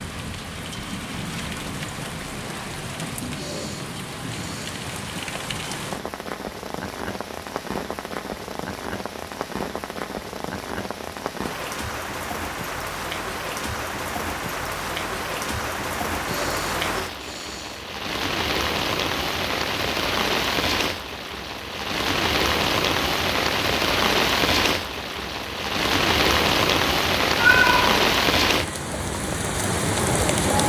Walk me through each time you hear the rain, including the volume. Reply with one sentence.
The rain can be heard from 0.0 to 30.6 s, getting louder.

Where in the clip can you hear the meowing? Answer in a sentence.
You can hear the meowing from 27.4 to 27.9 s.